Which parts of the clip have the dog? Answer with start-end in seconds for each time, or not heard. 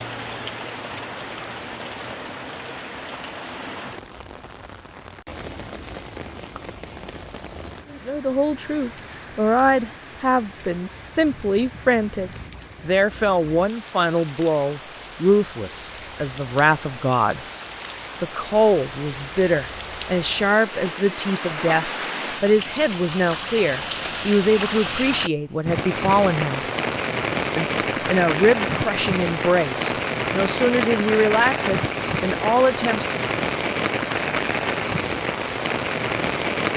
not heard.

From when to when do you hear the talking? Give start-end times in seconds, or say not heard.
7.9-17.4, 18.2-26.6, 27.6-33.2.